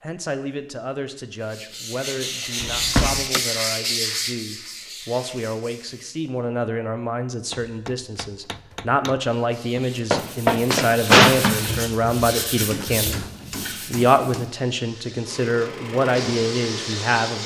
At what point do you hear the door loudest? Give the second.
11 s.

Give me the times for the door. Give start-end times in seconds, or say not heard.
2.6-3.2, 9.8-11.7.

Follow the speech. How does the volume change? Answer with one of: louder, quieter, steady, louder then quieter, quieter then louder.
louder.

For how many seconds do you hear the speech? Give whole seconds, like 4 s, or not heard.
17 s.